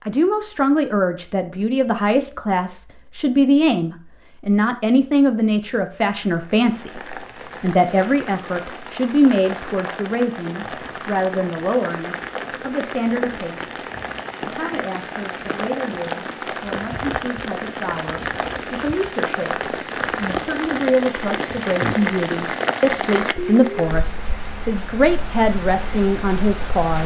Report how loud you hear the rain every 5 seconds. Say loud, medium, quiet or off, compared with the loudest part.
off, medium, medium, loud, loud, medium.